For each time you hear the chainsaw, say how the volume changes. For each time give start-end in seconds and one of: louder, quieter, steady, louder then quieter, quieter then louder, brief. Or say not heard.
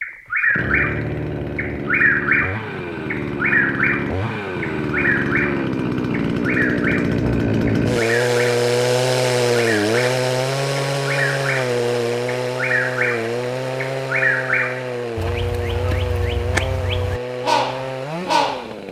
0.2-18.8 louder then quieter.